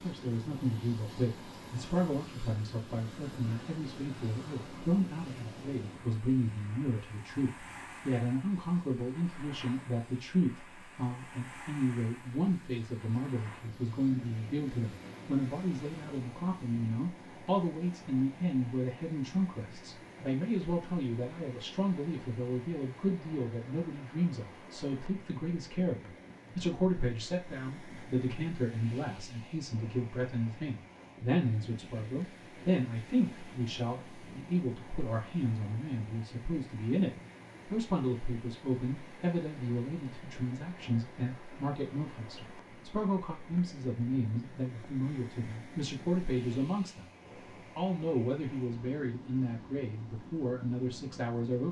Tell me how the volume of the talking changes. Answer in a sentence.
The loudness of the talking stays about the same.